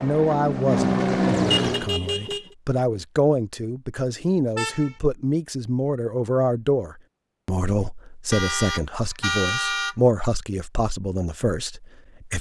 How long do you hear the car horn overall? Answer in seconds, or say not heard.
3 s.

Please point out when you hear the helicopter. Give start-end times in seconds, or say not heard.
0.0-1.9.